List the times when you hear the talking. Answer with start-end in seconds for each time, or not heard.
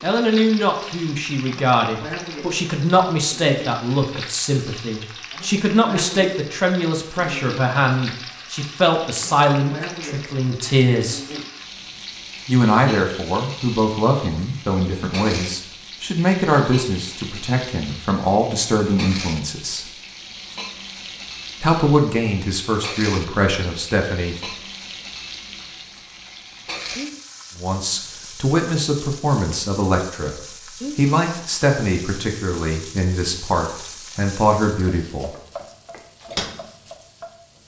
0.0-11.2, 12.4-19.9, 21.6-24.4, 27.6-35.4.